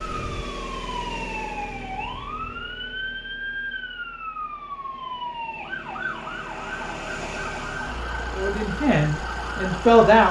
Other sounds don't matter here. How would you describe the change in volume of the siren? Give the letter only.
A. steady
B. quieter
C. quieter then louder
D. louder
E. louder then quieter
A.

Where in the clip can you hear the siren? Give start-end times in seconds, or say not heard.
0.0-10.0.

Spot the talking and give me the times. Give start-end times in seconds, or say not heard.
8.3-10.2.